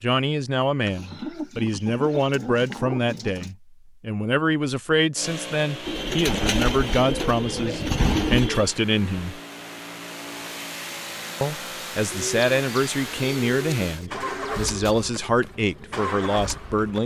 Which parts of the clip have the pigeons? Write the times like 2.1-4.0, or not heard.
0.8-3.5, 5.8-8.8, 12.1-15.1.